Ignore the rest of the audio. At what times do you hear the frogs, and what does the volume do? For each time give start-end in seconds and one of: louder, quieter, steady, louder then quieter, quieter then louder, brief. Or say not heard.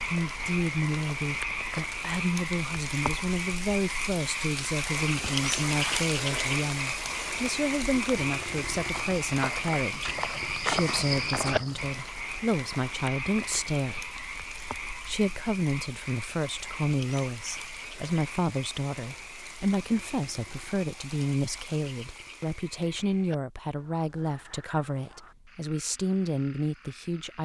0.0-27.4 quieter.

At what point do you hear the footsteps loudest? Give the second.
11 s.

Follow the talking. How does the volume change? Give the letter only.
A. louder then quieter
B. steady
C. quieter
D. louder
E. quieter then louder
B.